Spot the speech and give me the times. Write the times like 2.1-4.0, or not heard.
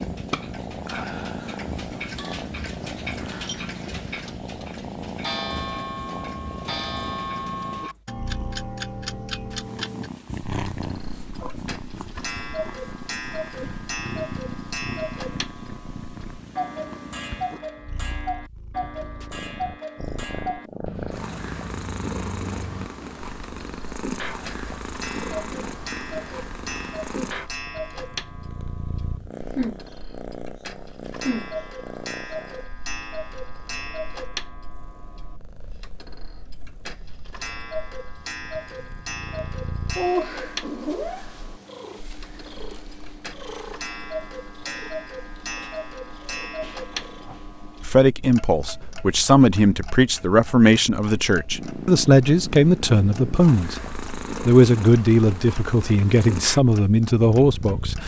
47.8-53.8, 54.5-58.0.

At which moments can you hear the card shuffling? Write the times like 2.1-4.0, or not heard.
not heard.